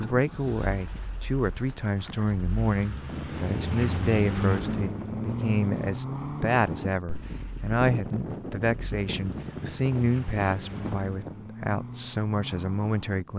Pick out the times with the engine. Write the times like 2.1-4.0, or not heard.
0.0-13.2.